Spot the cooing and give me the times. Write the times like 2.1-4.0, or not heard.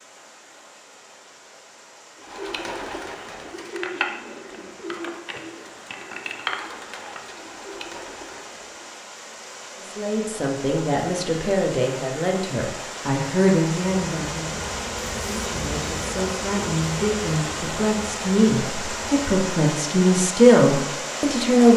2.1-8.9.